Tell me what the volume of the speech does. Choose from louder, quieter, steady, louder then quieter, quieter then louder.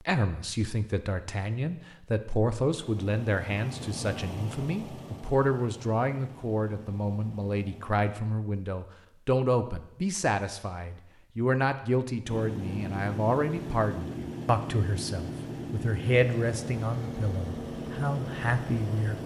steady.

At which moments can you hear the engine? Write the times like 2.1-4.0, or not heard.
2.6-8.1, 12.2-19.2.